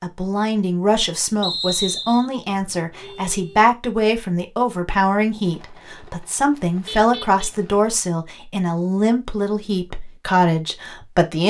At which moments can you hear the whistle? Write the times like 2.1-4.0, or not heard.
1.4-2.3.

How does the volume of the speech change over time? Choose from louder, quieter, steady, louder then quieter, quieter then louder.
steady.